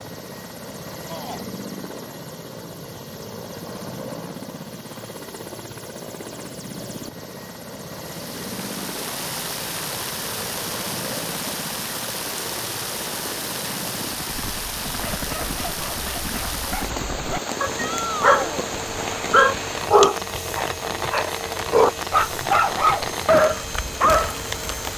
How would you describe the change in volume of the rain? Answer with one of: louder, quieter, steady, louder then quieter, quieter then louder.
steady.